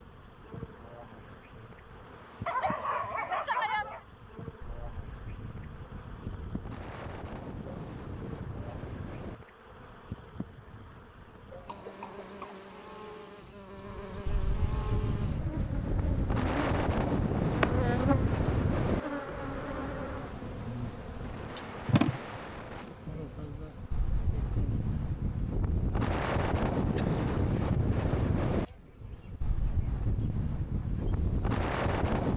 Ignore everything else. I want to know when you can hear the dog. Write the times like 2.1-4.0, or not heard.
2.5-4.0.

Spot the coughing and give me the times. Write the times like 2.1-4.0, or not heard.
11.7-12.7.